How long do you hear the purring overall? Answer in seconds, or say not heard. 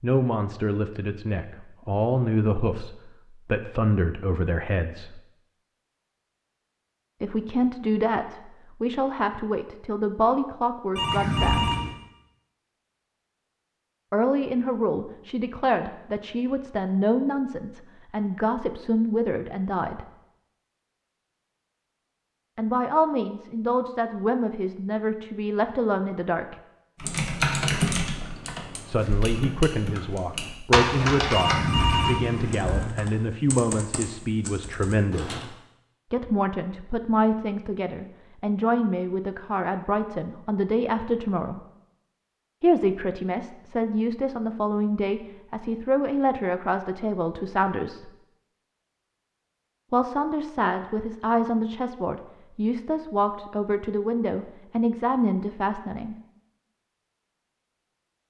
not heard.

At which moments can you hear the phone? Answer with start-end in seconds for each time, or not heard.
10.9-11.9, 31.3-32.9.